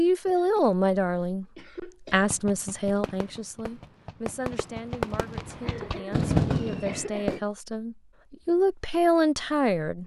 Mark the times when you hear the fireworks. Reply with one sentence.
The fireworks can be heard from 2.3 to 7.4 s.